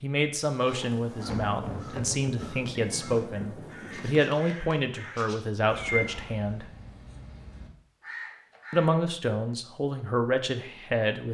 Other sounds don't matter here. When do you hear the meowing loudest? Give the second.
6 s.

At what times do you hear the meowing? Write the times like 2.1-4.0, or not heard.
2.8-3.2, 5.8-6.3.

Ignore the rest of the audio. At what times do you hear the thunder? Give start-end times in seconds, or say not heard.
0.8-4.3.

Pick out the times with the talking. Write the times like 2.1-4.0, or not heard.
0.0-6.7, 8.7-11.2.